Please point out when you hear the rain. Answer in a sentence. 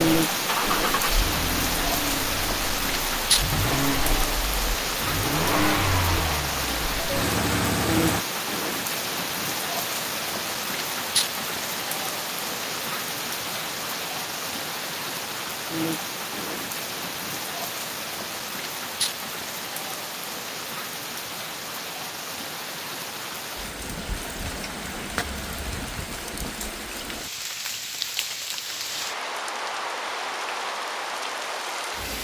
You can hear the rain from 0.0 to 32.1 s.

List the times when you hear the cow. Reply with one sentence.
You can't hear the cow here.